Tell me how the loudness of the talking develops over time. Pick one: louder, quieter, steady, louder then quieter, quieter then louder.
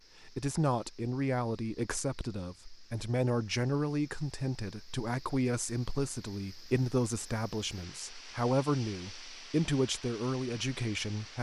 steady.